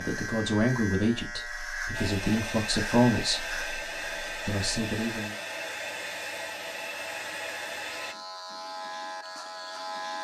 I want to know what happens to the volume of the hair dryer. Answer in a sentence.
The loudness of the hair dryer stays about the same.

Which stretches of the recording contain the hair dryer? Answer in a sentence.
You can hear the hair dryer from 1.9 to 8.2 s.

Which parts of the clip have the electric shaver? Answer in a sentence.
You can hear the electric shaver from 0.0 to 10.1 s.